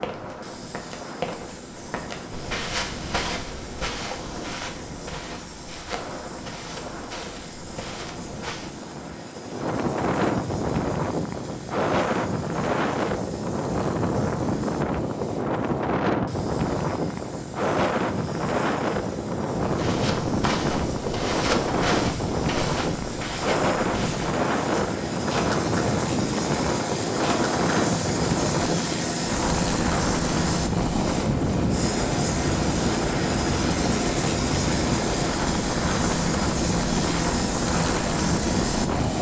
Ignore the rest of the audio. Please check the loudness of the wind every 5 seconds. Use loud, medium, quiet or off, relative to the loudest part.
quiet, medium, loud, loud, loud, loud, loud, loud.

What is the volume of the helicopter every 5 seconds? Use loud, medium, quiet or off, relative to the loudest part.
quiet, quiet, quiet, quiet, medium, loud, loud, loud.